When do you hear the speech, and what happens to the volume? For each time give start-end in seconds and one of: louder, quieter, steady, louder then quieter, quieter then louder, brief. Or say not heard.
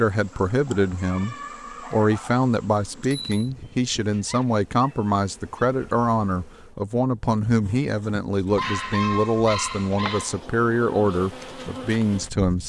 0.0-12.6 steady.